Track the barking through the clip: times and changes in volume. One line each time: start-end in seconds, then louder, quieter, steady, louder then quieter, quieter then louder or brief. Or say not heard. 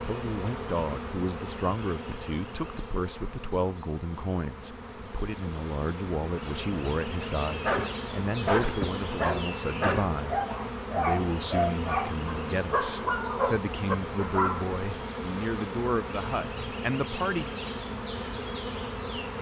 7.5-14.8 steady.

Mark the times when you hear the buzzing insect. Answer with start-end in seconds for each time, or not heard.
0.0-19.3.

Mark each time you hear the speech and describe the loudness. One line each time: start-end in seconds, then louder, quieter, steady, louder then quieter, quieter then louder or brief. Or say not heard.
0.0-17.5 steady.